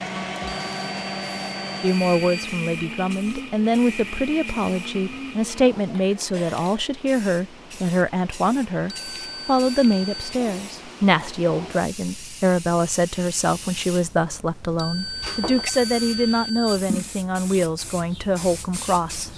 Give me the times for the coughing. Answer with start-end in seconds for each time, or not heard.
not heard.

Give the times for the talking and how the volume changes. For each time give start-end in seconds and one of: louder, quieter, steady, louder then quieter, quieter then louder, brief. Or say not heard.
1.8-19.3 steady.